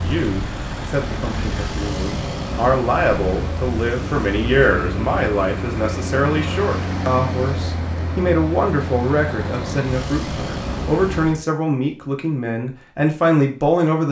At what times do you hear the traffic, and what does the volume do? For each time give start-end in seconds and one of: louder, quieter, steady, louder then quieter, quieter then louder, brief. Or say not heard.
0.0-11.4 steady.